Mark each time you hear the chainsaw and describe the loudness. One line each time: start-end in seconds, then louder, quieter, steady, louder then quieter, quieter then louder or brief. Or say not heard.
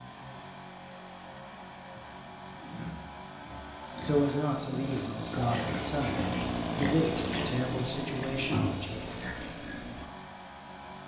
0.0-11.0 louder then quieter.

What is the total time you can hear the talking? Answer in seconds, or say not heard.
5 s.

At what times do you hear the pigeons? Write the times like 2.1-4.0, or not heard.
not heard.